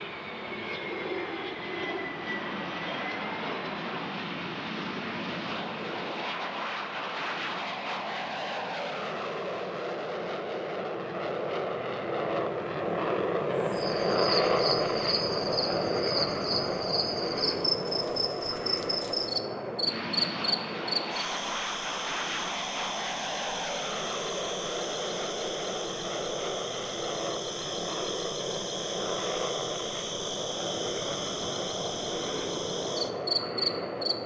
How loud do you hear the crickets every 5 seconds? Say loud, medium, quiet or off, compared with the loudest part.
off, off, loud, loud, loud, medium, loud.